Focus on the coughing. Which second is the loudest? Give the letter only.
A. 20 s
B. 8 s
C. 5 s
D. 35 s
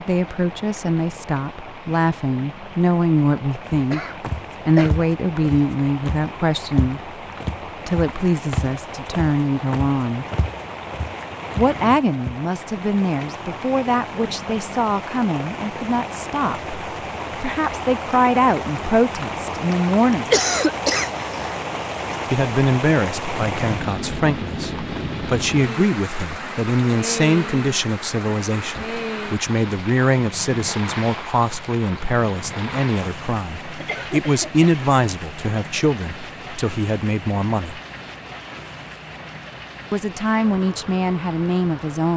A.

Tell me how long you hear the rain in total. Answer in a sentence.
The rain can be heard for 42 seconds in total.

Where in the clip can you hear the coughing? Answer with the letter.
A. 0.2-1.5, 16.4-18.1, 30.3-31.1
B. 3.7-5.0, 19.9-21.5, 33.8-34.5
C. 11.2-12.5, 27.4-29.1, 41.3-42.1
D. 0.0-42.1
B.